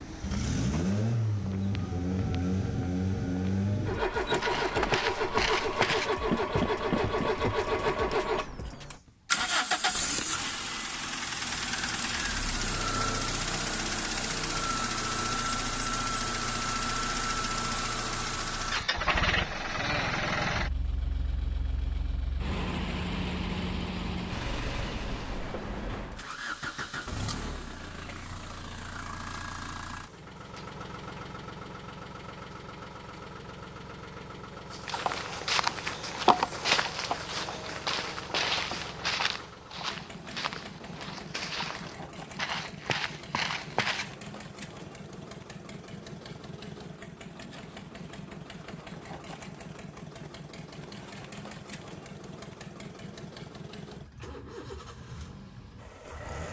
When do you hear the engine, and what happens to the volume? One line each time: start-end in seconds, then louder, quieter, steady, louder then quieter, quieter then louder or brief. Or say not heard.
0.0-56.4 quieter.